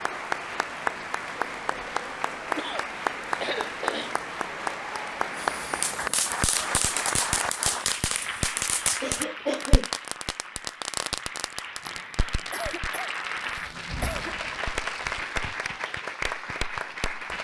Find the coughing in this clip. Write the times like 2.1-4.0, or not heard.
2.5-4.2, 9.0-9.9, 11.8-14.3.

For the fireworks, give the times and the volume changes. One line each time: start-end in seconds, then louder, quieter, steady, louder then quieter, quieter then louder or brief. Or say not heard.
5.3-15.4 quieter.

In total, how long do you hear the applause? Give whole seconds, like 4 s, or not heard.
17 s.